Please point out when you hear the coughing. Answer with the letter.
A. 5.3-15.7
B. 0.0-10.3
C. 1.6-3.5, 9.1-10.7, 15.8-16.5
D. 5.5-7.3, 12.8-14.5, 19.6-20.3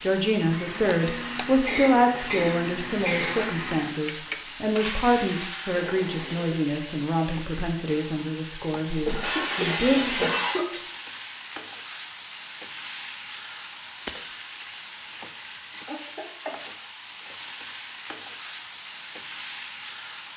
C.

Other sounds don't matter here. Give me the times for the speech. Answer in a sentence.
The speech can be heard from 0.0 to 10.3 s.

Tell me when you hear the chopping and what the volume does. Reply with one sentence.
The chopping can't be heard in this clip.